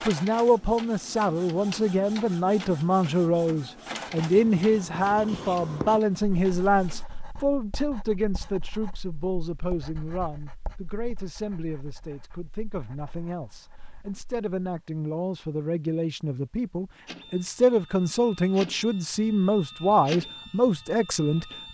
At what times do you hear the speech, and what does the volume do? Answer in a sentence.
The speech can be heard from 0.0 to 21.6 s, getting quieter then louder.